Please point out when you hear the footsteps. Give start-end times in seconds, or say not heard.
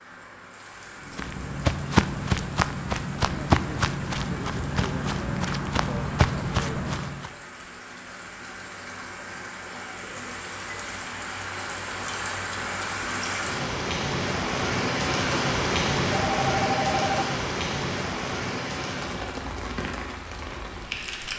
1.1-7.3.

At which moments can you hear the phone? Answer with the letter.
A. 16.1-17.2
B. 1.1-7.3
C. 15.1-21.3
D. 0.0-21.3
A.